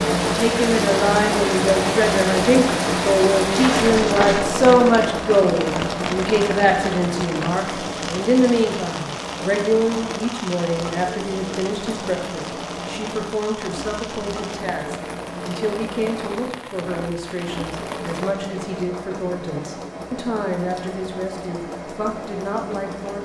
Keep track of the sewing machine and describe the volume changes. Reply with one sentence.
The loudness of the sewing machine goes down.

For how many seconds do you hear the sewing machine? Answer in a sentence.
The sewing machine can be heard for 23 seconds in total.